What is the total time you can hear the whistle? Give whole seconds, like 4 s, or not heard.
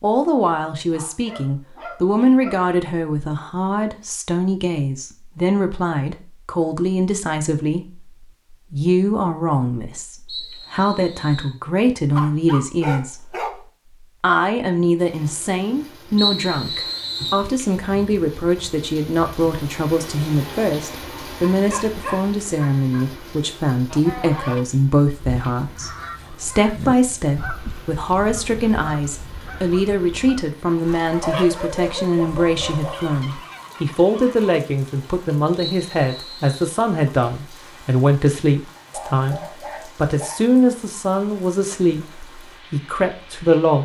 4 s.